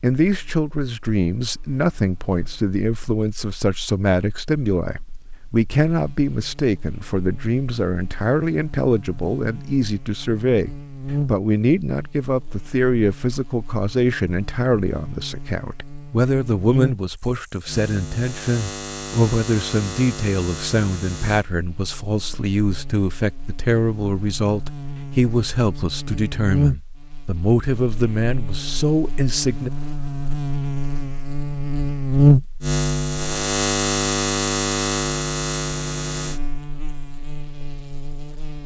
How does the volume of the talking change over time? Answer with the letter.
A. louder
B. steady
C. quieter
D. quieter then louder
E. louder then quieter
B.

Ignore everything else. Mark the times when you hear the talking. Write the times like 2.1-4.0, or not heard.
0.0-29.7.